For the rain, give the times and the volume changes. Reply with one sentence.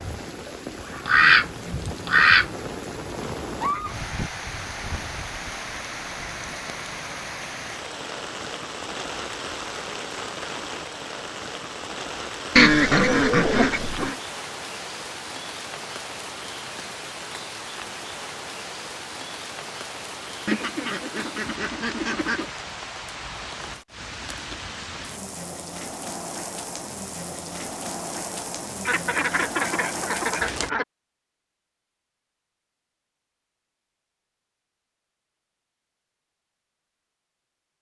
The rain can be heard from 0.0 to 30.7 s, at a steady volume.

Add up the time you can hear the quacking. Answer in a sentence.
You can hear the quacking for 7 seconds altogether.